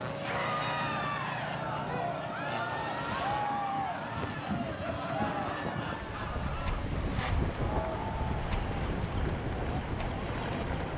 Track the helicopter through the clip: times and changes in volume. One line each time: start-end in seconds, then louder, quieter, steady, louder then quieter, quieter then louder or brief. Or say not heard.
0.0-10.9 quieter then louder.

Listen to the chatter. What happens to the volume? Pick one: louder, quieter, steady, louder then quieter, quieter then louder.
quieter.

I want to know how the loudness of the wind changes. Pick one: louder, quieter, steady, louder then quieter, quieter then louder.
louder.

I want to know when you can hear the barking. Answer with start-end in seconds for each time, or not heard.
not heard.